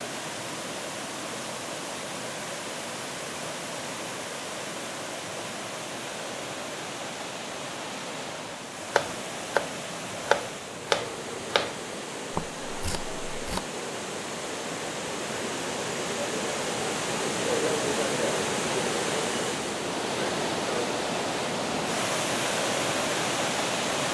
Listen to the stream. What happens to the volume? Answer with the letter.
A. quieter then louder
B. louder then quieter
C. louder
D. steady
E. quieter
C.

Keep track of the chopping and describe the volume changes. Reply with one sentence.
The loudness of the chopping goes down.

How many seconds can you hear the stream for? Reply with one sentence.
The stream can be heard for 24 seconds in total.